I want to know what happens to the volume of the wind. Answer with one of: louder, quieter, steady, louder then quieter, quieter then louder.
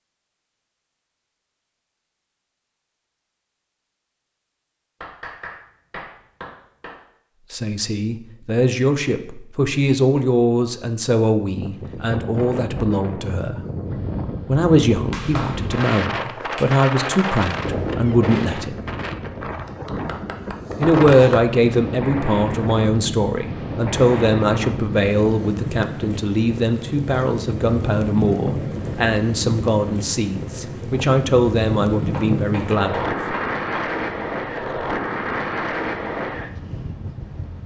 steady.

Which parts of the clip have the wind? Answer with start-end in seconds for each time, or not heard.
11.6-37.6.